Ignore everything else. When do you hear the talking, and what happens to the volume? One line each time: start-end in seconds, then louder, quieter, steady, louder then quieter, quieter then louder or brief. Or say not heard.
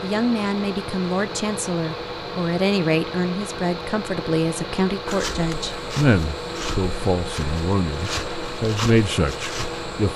0.0-10.1 steady.